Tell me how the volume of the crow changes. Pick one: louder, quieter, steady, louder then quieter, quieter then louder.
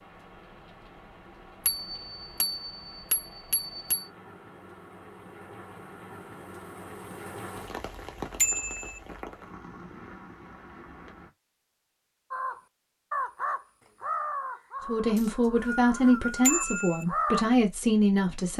quieter then louder.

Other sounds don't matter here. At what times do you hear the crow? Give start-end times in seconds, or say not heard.
12.3-17.4.